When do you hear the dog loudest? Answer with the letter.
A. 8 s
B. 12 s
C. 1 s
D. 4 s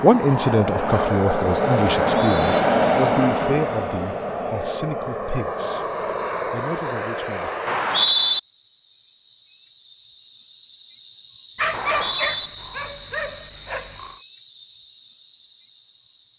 B.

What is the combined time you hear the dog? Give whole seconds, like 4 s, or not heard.
3 s.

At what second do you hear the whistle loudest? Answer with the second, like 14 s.
8 s.